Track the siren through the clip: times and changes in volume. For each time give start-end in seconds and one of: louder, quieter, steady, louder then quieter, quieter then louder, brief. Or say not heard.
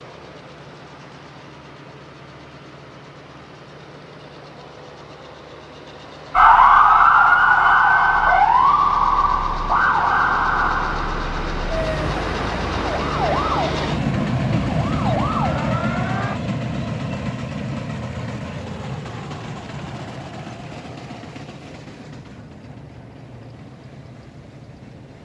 6.3-16.4 quieter.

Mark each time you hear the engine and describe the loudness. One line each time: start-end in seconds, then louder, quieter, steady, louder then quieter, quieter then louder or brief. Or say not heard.
0.0-25.1 louder then quieter.